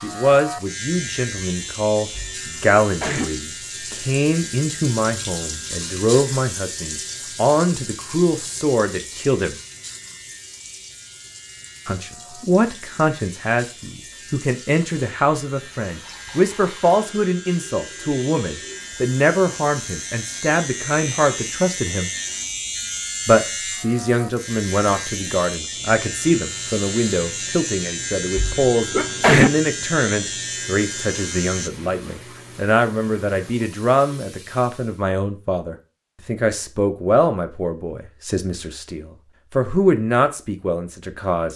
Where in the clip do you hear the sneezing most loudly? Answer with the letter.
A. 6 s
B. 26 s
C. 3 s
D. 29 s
D.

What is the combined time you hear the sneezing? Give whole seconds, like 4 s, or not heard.
2 s.